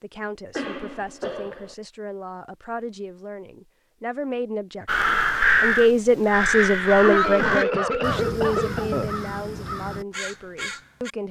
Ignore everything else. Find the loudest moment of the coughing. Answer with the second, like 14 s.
7 s.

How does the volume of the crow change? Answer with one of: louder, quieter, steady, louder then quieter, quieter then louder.
quieter.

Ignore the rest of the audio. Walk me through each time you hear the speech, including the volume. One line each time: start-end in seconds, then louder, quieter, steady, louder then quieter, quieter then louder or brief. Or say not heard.
0.0-11.2 louder then quieter.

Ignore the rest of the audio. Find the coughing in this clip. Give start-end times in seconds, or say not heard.
0.6-1.8, 7.0-9.2.